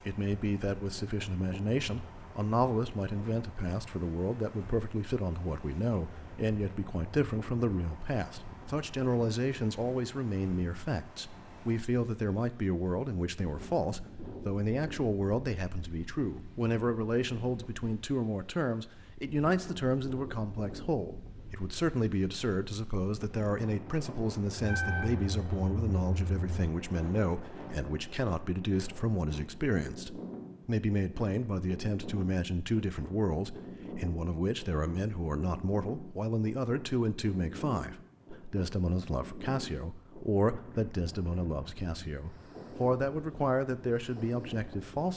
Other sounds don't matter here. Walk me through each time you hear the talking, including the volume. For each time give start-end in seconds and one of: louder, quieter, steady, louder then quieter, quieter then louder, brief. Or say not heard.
0.1-45.1 steady.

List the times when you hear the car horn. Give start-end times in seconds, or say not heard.
24.6-26.6.